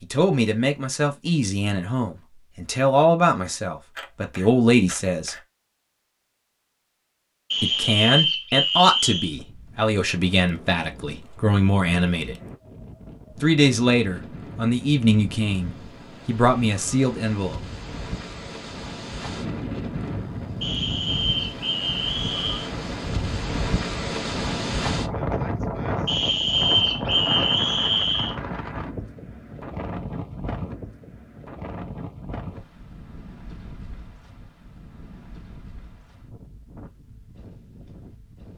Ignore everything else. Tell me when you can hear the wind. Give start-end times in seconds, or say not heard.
9.2-38.5.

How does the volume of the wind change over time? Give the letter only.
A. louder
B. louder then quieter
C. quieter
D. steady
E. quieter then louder
B.